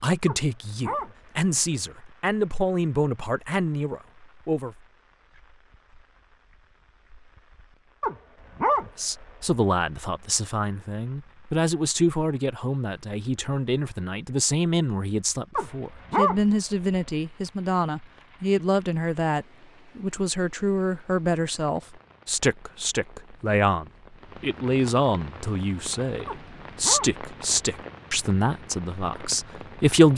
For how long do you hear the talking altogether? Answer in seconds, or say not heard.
26 s.